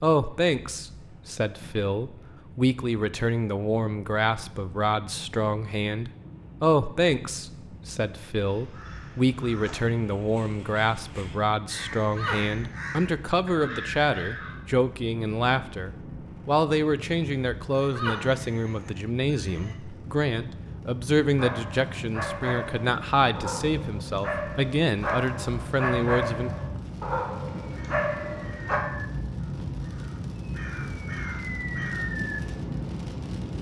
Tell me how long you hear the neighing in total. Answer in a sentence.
You can hear the neighing for 3 seconds altogether.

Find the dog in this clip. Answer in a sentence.
The dog can be heard from 21.4 to 28.8 s.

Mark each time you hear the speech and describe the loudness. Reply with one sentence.
You can hear the speech from 0.0 to 26.5 s, at a steady volume.